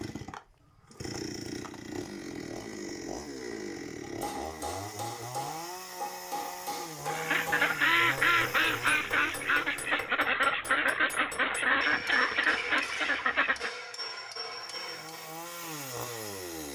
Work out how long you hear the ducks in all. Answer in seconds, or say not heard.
7 s.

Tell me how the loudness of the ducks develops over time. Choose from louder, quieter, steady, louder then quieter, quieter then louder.
steady.